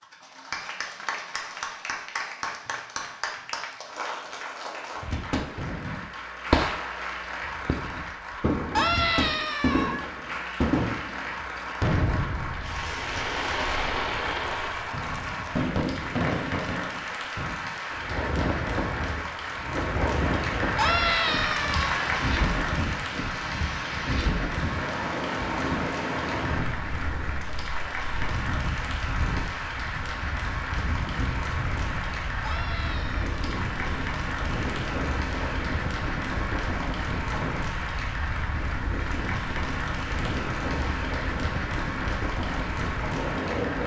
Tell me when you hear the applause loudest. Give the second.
22 s.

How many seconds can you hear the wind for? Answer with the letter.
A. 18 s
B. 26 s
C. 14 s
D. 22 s
B.